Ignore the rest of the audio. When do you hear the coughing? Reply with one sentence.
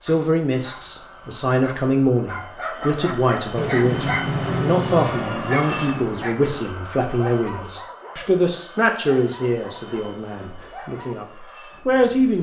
You can't hear the coughing here.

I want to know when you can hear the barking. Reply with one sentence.
The barking can be heard from 0.1 to 11.1 s.